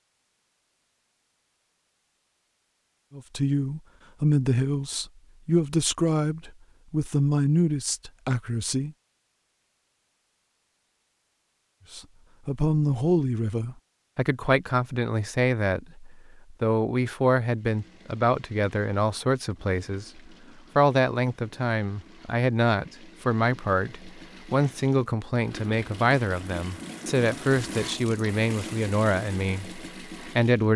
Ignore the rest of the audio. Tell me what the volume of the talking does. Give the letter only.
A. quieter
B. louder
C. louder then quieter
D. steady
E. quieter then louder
D.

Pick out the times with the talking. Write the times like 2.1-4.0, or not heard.
3.1-8.9, 11.9-30.7.